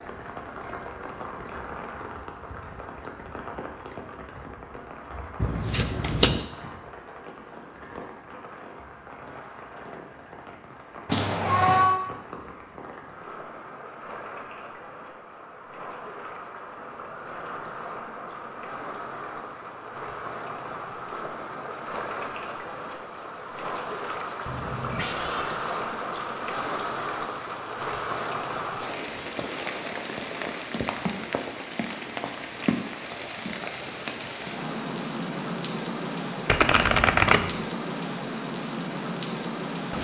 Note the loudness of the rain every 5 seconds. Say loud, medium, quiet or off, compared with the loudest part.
medium, medium, medium, medium, loud, loud, loud, loud.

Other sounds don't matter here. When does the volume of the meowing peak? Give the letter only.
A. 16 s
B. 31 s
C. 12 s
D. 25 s
C.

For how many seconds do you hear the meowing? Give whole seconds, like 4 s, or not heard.
2 s.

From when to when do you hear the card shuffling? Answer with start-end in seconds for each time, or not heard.
5.4-6.5, 36.5-37.5.